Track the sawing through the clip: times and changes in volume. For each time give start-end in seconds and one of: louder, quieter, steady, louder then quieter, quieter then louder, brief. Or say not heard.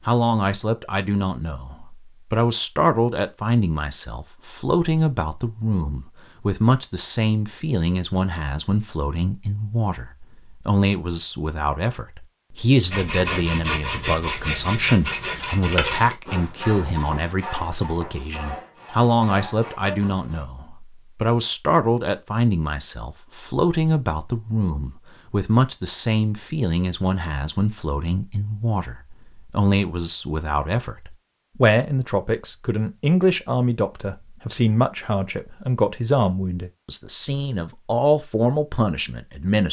12.9-20.4 quieter.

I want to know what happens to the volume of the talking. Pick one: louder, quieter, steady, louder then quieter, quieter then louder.
steady.